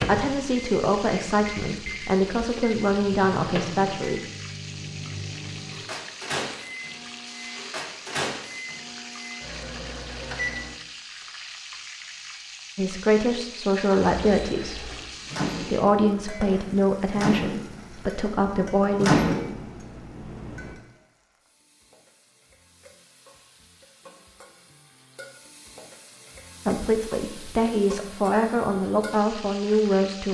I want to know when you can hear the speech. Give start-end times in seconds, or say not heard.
0.1-4.2, 12.8-14.9, 15.6-19.3, 26.6-30.2.